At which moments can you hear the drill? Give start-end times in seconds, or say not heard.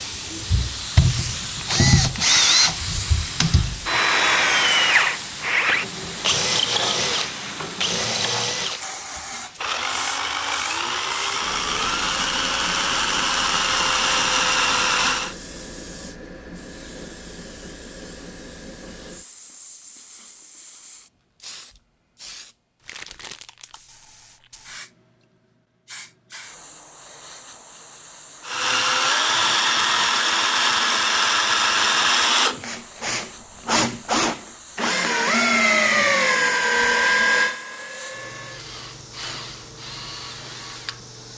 0.0-15.3, 28.4-41.2.